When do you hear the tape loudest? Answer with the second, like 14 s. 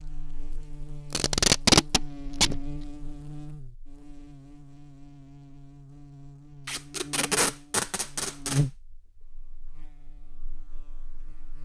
2 s.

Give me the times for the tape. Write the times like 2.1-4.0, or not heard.
1.1-2.6, 6.7-8.7.